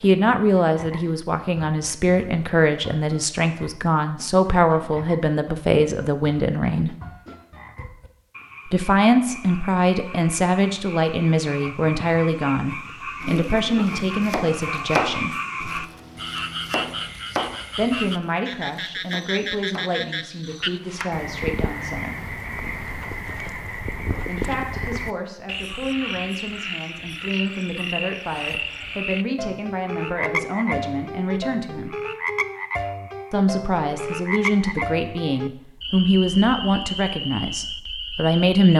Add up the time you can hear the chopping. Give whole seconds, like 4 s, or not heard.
8 s.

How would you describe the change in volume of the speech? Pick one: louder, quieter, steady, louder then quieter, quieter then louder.
quieter then louder.